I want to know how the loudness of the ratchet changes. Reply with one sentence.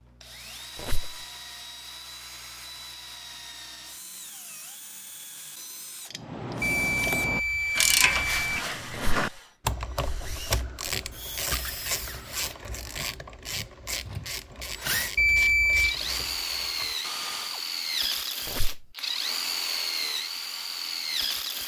The loudness of the ratchet goes down.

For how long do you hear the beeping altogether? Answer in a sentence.
You can hear the beeping for 3 seconds altogether.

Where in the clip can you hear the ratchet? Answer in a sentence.
The ratchet can be heard from 6.1 to 17.6 s.